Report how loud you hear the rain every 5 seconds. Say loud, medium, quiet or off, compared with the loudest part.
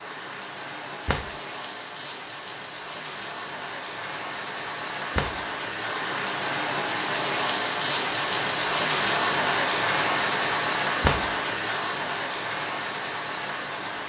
medium, loud, loud.